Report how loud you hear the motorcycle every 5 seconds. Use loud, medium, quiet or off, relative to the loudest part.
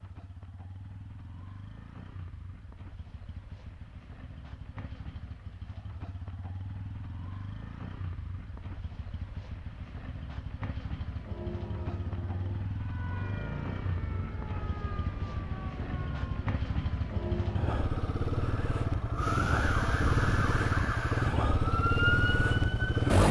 quiet, quiet, quiet, medium, loud.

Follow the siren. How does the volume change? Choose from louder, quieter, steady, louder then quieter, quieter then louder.
louder.